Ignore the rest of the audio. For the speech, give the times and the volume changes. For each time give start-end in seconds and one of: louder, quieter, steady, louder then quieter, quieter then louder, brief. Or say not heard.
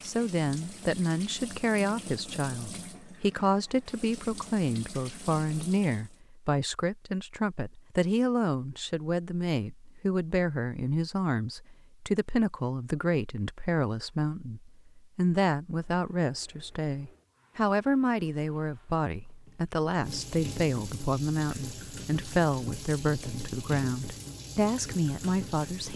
0.0-25.9 steady.